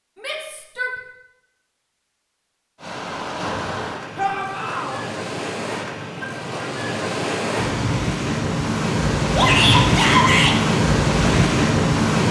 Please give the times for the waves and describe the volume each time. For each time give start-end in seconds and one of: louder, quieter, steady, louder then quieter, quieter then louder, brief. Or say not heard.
2.8-12.2 louder.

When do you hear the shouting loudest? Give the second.
10 s.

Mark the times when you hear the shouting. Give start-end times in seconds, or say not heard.
0.2-0.9, 4.2-5.0, 9.3-10.6.